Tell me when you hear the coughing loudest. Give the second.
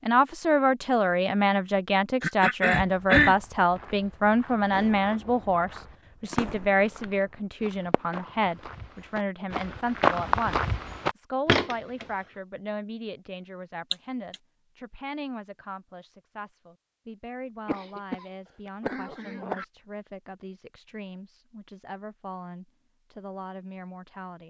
3 s.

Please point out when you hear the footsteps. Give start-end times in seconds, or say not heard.
2.8-12.1.